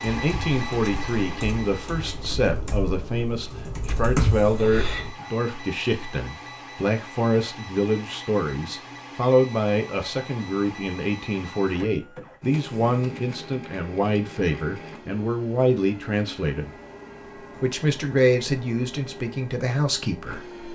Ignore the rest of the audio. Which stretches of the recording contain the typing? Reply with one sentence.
You can hear the typing from 0.1 to 5.2 s.